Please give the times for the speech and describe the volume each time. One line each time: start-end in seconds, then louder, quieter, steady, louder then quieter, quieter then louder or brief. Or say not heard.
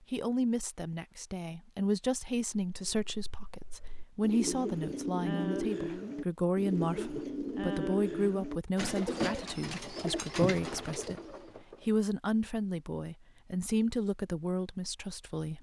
0.1-15.5 steady.